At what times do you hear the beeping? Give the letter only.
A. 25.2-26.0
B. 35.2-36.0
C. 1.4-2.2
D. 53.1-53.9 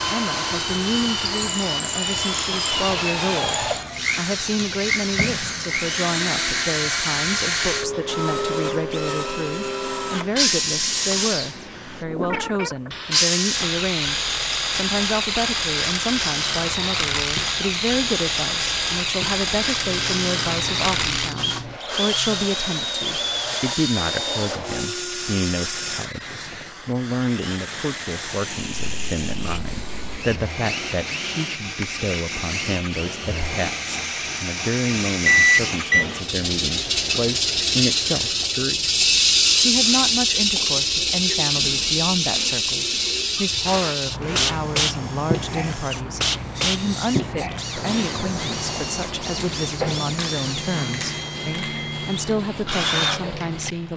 B.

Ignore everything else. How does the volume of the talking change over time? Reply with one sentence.
The volume of the talking stays about the same.